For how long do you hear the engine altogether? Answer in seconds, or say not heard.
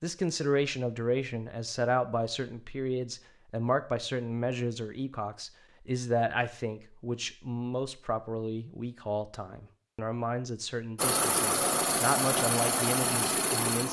3 s.